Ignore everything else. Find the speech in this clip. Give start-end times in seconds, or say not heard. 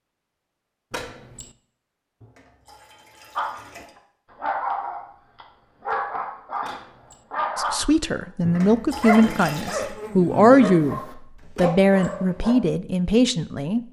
7.5-13.8.